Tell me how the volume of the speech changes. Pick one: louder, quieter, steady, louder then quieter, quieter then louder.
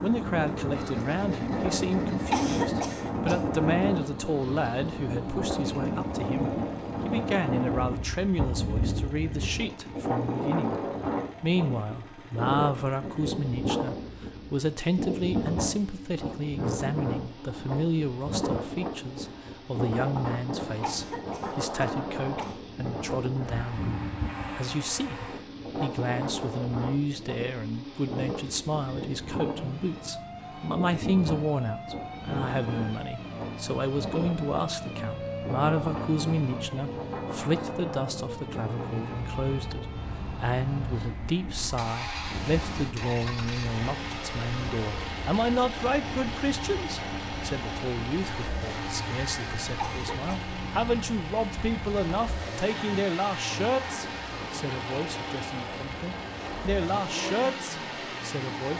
steady.